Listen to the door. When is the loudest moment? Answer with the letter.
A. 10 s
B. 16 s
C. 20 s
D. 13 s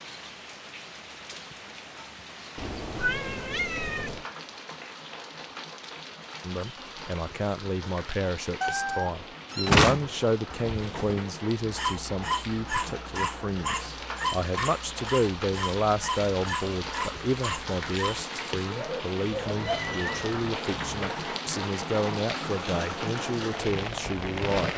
A.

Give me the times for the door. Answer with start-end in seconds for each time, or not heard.
9.5-11.2.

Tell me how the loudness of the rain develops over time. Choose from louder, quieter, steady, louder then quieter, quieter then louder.
louder.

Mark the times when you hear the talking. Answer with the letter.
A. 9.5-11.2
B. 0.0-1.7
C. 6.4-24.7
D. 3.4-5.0
C.